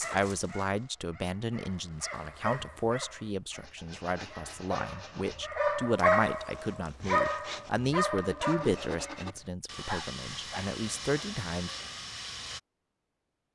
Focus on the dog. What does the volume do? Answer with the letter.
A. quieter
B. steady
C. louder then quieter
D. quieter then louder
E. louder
C.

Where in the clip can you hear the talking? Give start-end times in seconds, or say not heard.
0.0-11.7.